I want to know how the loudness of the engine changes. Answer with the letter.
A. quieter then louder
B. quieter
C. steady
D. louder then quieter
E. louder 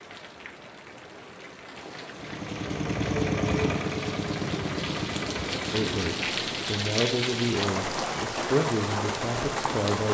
B.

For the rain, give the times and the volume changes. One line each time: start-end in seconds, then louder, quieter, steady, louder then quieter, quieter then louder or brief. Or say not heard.
0.0-10.0 louder.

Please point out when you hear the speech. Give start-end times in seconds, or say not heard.
5.7-10.0.